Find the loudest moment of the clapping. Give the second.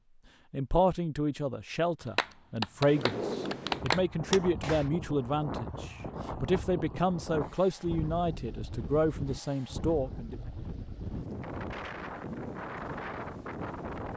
4 s.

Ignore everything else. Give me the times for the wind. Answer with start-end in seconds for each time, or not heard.
2.9-14.1.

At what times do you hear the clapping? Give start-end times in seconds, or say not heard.
2.0-4.9.